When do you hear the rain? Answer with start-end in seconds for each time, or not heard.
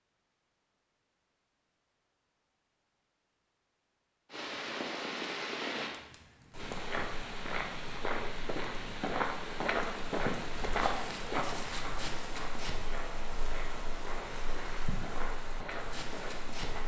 4.3-16.8.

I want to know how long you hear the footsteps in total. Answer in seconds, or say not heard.
10 s.